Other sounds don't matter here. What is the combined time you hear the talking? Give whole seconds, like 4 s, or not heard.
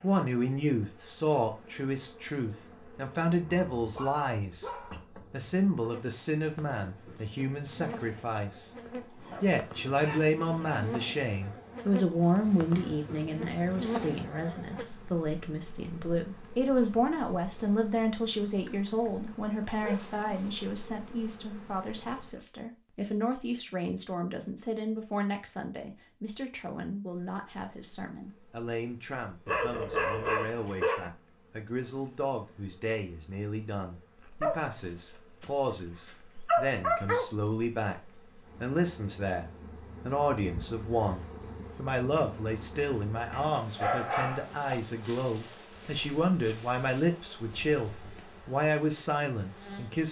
49 s.